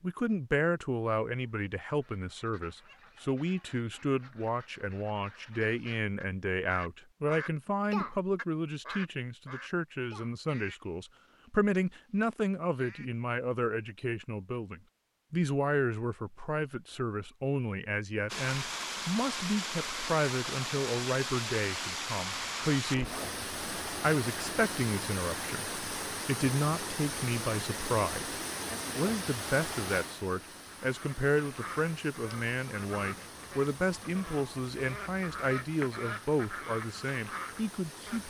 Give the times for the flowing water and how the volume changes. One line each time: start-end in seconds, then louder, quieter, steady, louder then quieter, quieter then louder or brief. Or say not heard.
18.2-38.2 quieter.